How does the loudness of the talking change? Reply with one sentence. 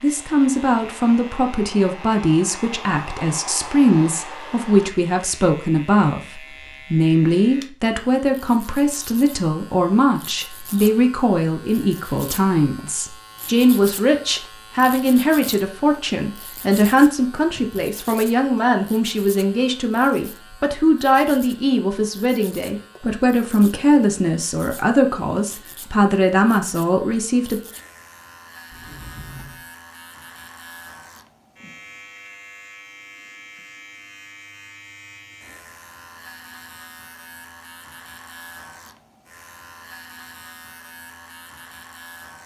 The loudness of the talking stays about the same.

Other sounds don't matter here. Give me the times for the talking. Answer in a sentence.
You can hear the talking from 0.0 to 27.6 s.